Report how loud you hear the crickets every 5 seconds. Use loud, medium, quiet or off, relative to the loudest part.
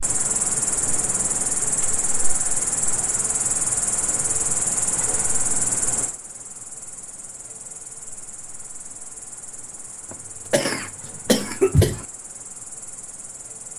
loud, medium, quiet.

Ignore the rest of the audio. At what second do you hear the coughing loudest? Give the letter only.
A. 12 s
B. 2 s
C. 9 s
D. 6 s
A.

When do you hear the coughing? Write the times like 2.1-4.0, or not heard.
10.1-12.1.